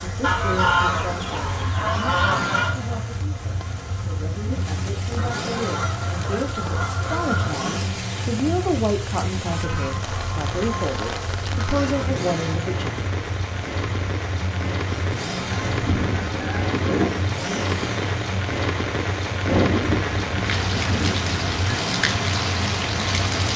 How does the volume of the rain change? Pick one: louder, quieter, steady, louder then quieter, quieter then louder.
louder.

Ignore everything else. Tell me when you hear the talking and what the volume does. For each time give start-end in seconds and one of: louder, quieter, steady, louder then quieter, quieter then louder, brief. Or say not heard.
0.0-13.1 louder.